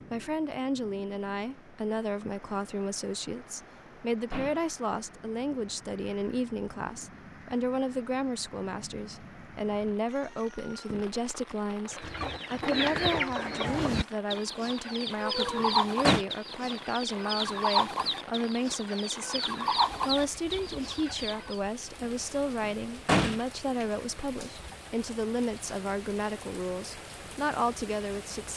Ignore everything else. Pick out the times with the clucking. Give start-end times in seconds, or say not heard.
11.8-21.6.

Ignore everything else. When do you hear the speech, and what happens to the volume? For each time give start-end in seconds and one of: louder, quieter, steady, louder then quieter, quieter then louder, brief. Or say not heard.
0.1-28.5 steady.